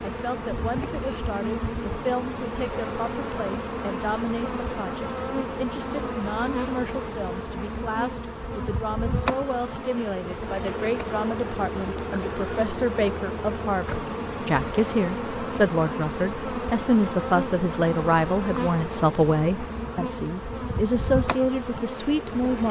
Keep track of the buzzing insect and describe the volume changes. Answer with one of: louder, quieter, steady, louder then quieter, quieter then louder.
steady.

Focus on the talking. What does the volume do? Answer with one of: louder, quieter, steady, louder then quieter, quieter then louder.
louder.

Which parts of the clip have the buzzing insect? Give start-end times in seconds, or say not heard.
0.0-22.6.